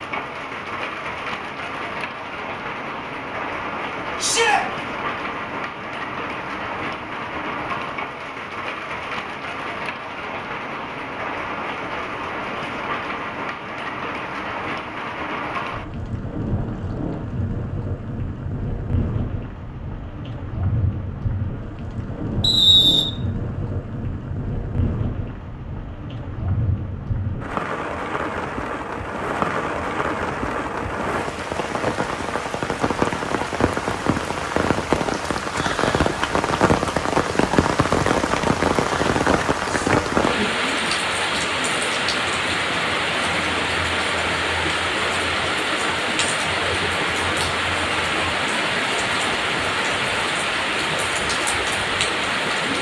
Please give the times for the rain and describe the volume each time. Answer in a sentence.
The rain can be heard from 0.0 to 52.7 s, getting louder.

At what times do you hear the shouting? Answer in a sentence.
The shouting can be heard from 4.2 to 4.6 s.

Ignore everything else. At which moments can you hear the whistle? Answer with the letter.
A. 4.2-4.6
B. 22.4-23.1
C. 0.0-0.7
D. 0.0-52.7
B.